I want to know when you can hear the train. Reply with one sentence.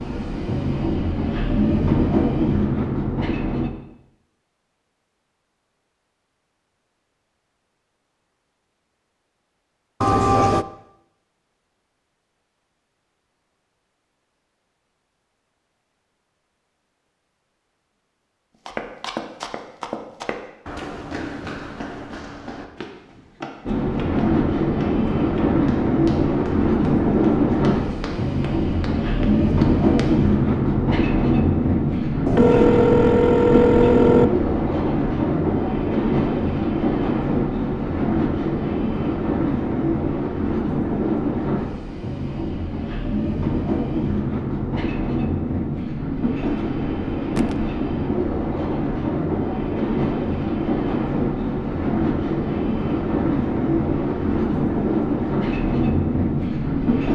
You can hear the train from 0.0 to 3.7 s and from 23.6 to 57.1 s.